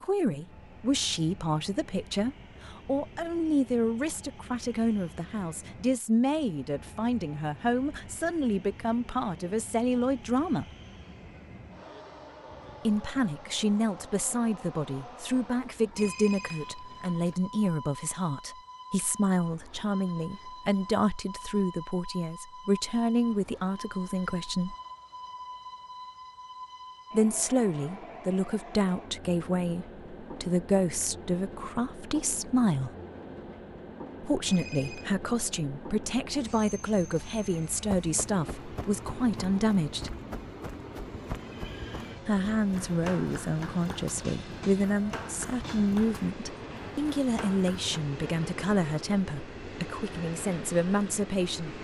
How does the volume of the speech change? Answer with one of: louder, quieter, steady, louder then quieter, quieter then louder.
steady.